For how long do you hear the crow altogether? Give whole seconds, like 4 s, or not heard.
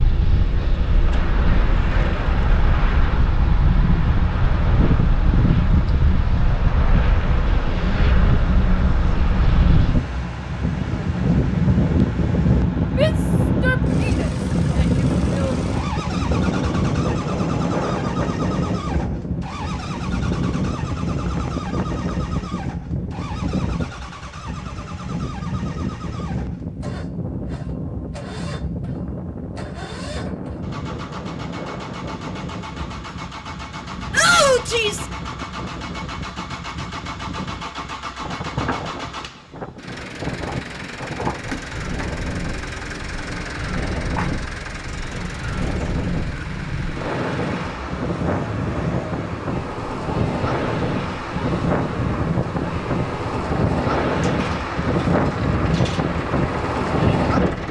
not heard.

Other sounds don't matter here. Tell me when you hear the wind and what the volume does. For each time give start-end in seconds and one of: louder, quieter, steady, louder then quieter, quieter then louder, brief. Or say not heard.
0.0-57.6 quieter then louder.